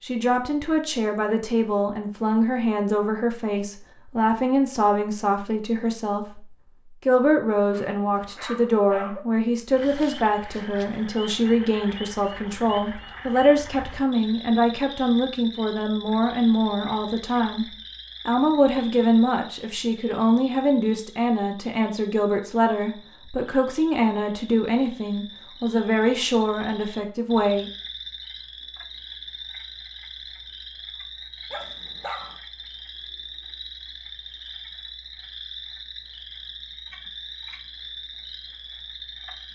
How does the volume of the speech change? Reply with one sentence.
The loudness of the speech stays about the same.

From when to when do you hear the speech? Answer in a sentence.
The speech can be heard from 0.0 to 6.5 s, from 7.0 to 17.6 s and from 18.2 to 27.7 s.